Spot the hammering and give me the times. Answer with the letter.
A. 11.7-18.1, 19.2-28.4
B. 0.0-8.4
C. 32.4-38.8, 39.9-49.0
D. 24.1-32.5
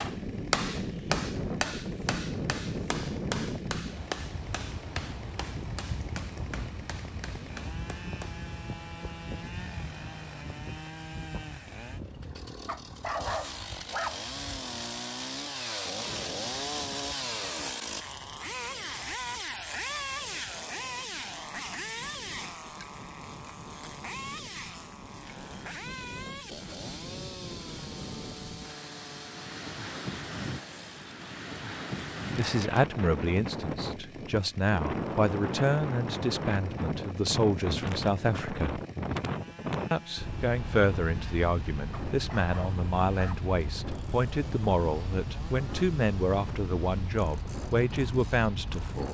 B.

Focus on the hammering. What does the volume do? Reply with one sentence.
The volume of the hammering goes down.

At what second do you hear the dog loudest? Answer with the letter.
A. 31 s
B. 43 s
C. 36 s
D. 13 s
D.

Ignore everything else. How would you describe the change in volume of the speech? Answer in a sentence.
The loudness of the speech stays about the same.